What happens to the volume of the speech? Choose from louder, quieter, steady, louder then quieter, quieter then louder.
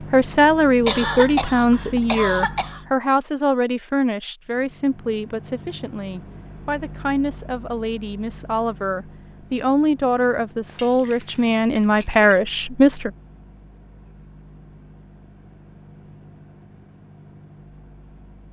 quieter then louder.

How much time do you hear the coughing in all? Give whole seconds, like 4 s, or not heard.
2 s.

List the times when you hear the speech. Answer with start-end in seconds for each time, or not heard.
0.1-13.1.